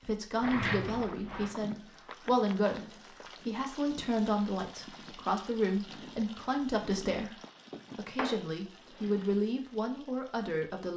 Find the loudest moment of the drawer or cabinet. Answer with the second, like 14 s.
1 s.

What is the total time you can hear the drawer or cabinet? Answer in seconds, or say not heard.
3 s.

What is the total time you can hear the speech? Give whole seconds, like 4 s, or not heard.
10 s.